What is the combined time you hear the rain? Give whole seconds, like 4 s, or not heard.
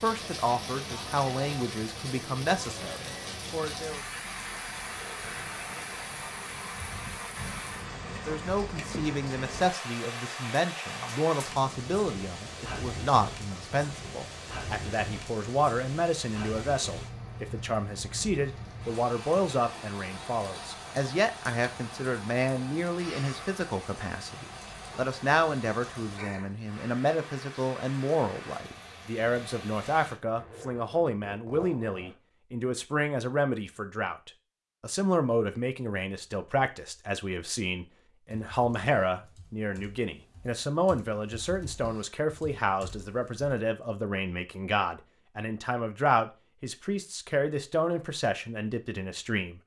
30 s.